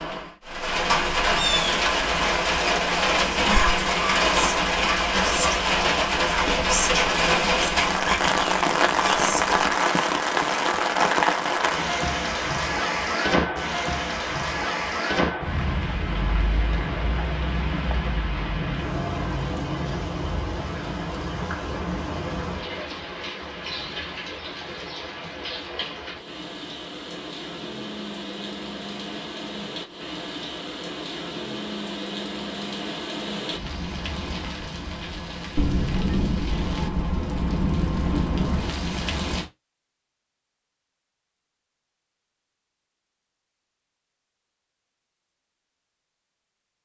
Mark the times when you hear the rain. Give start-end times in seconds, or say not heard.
0.0-39.5.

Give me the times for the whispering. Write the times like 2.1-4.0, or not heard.
3.1-9.8.